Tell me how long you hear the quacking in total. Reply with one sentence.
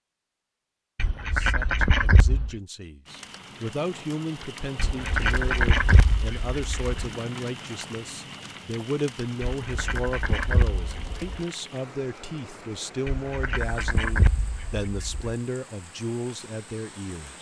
You can hear the quacking for 8 seconds altogether.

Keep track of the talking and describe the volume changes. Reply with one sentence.
The volume of the talking stays about the same.